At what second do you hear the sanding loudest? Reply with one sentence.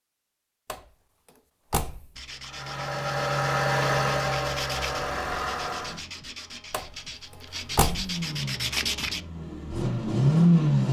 The volume of the sanding peaks at 9 seconds.